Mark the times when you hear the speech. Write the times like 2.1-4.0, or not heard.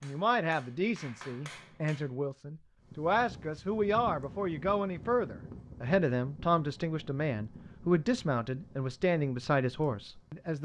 0.0-10.6.